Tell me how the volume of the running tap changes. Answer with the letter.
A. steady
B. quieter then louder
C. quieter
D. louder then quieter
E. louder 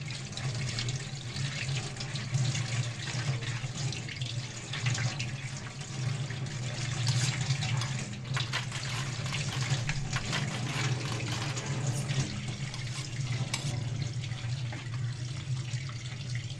A.